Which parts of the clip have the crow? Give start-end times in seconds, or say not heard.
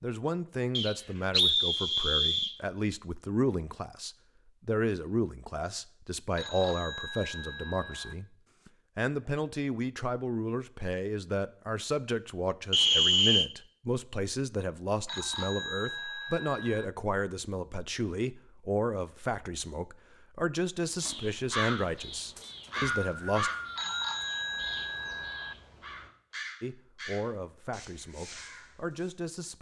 20.9-29.1.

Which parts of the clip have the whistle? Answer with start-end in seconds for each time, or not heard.
0.8-2.5, 12.7-13.5, 22.4-24.1.